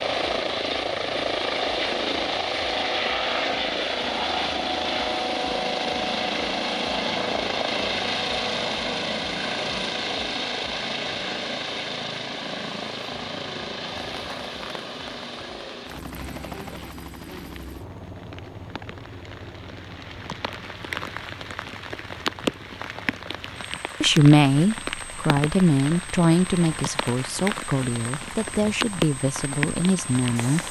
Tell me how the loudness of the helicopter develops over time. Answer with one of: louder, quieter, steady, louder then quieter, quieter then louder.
quieter.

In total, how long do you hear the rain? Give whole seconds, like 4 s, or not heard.
17 s.